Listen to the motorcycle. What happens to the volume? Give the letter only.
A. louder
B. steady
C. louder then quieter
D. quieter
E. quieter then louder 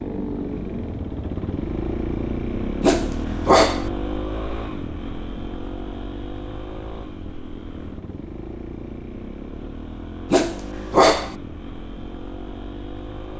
D.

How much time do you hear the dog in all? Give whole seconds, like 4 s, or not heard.
2 s.